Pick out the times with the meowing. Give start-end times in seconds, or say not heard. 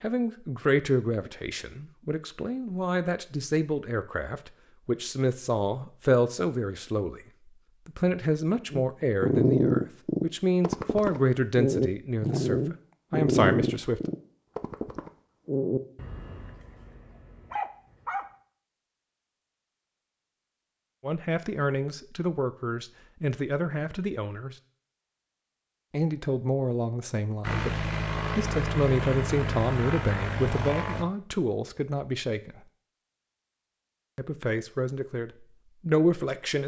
not heard.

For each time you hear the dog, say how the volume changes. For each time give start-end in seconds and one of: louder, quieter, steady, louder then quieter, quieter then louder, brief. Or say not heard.
8.7-18.2 quieter.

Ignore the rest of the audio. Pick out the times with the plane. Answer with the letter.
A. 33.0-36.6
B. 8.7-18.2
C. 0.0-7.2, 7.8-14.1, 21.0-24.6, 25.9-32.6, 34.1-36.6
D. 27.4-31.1
D.